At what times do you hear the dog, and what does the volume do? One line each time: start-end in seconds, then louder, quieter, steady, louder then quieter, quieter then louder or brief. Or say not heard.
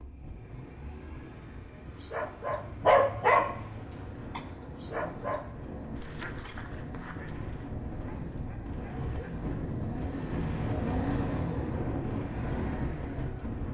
2.0-9.6 quieter.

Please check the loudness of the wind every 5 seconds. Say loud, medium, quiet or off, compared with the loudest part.
quiet, medium, loud.